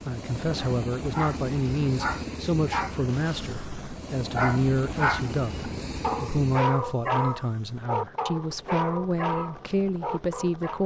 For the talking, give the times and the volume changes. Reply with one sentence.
You can hear the talking from 0.1 to 10.8 s, at a steady volume.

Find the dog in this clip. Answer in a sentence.
You can hear the dog from 0.6 to 10.8 s.